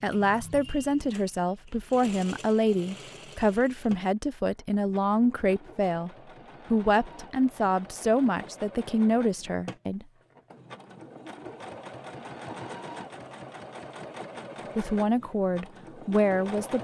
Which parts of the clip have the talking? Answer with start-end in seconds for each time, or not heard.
0.0-6.1, 6.7-10.1, 14.8-16.8.